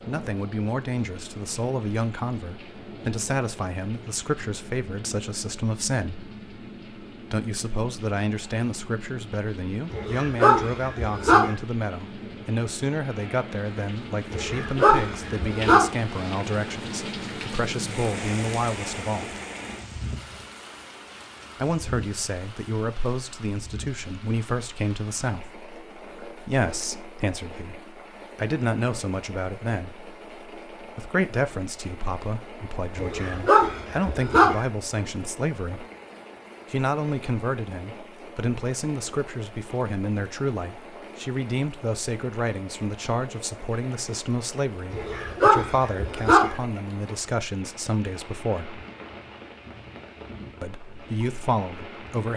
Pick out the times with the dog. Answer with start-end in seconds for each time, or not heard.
9.9-11.6, 14.3-15.8, 33.0-34.6, 44.9-46.5.